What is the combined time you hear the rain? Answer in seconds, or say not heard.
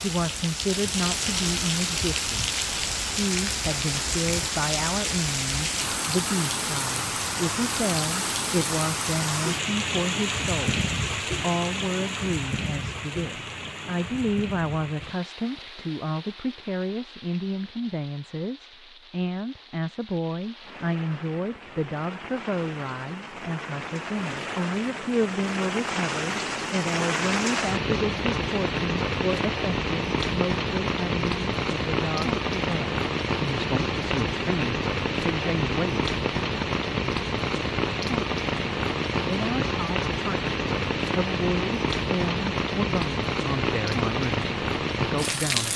46 s.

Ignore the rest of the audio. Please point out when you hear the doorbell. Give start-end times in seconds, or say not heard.
not heard.